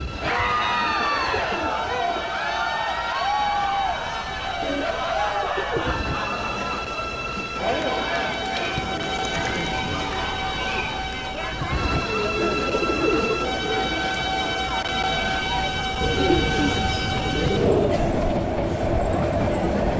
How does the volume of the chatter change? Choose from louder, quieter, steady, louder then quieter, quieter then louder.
quieter.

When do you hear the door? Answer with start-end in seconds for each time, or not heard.
not heard.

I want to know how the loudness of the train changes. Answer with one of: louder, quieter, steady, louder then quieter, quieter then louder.
louder.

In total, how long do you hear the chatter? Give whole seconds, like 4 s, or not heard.
20 s.